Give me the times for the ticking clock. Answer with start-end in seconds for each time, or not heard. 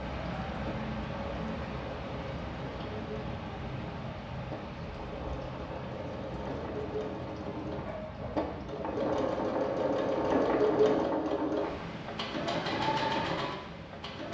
not heard.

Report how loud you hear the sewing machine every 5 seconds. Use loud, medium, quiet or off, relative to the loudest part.
quiet, medium, loud.